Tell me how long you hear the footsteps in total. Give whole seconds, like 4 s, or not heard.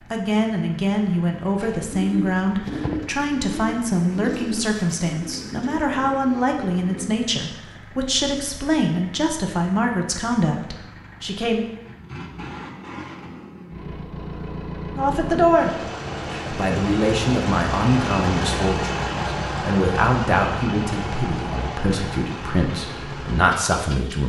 not heard.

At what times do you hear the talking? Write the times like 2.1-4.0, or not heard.
0.1-11.7, 14.9-24.2.